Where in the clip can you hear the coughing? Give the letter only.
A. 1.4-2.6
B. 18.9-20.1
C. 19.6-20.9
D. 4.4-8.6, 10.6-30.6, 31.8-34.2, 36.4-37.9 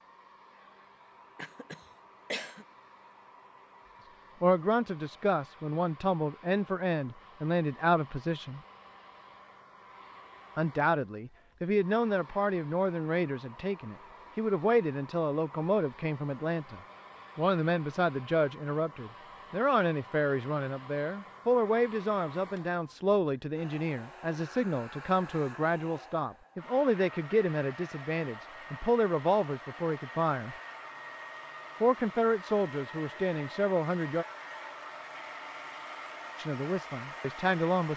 A.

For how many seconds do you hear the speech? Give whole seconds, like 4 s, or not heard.
28 s.